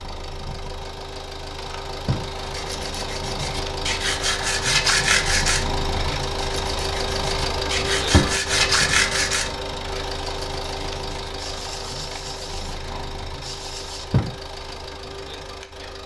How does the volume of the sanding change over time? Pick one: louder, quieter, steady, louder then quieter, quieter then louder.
quieter.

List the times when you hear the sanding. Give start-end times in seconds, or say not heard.
2.4-14.1.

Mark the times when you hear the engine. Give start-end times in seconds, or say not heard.
0.0-16.0.